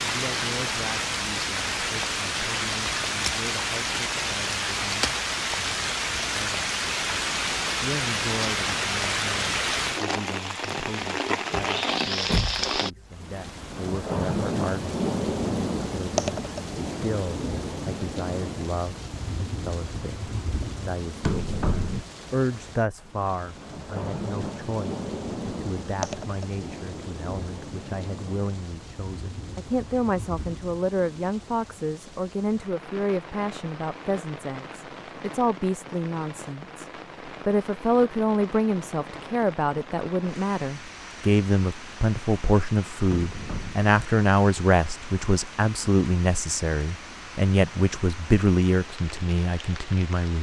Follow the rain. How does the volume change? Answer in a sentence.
The loudness of the rain goes down.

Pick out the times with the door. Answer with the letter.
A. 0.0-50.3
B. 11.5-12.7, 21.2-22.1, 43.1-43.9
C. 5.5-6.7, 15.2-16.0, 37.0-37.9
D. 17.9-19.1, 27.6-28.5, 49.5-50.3
B.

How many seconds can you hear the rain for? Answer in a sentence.
The rain can be heard for 50 seconds in total.